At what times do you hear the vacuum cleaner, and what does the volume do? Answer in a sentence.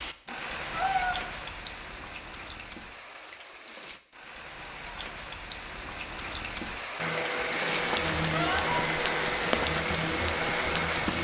The vacuum cleaner can be heard from 7.0 to 11.1 s, at a steady volume.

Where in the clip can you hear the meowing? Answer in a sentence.
You can hear the meowing from 0.2 to 1.1 s and from 8.2 to 8.8 s.